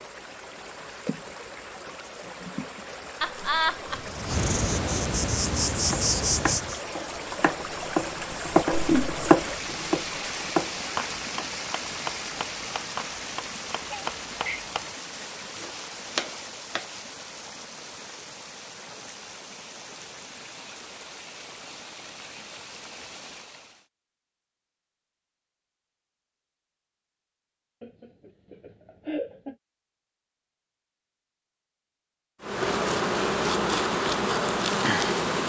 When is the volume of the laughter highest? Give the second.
4 s.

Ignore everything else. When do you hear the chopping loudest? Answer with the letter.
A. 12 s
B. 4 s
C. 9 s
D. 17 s
C.